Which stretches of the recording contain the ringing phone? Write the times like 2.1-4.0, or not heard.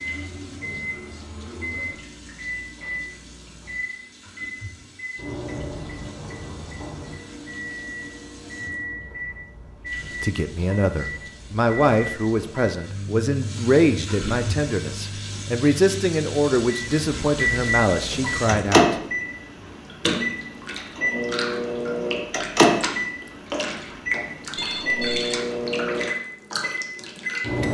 24.6-25.4.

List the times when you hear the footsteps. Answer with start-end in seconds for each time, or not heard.
not heard.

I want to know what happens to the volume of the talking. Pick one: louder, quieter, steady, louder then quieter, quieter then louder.
steady.